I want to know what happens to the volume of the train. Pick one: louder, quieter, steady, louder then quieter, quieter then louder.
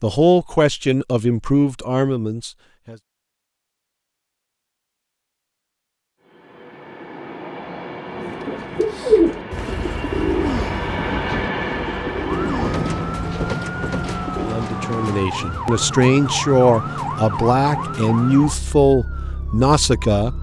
louder.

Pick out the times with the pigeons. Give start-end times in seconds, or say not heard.
8.1-14.6.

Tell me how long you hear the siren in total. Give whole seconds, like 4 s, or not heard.
8 s.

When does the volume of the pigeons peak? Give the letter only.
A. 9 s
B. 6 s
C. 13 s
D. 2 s
A.